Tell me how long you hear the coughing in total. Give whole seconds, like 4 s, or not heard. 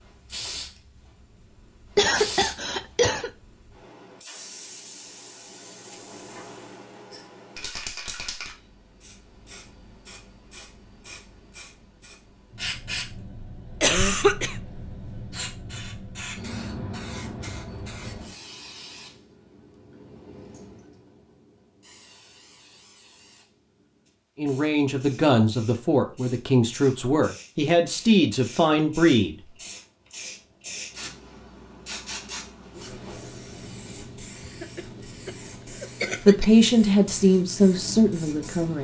4 s.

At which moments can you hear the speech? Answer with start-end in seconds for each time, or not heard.
24.4-29.4, 36.2-38.7.